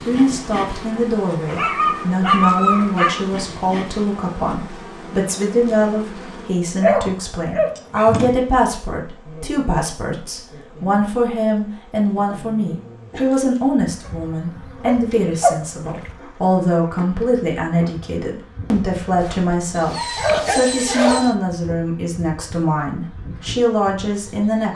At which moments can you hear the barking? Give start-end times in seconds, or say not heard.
1.4-3.2, 6.8-8.1, 14.1-16.1, 19.2-21.3.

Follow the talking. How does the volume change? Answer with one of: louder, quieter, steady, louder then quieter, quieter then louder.
steady.